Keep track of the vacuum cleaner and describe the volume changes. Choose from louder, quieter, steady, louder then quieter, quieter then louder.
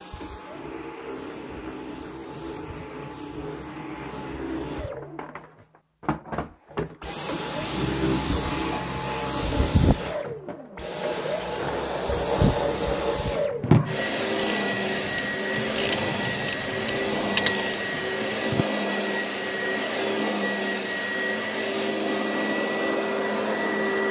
louder.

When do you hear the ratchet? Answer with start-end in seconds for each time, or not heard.
13.2-18.6.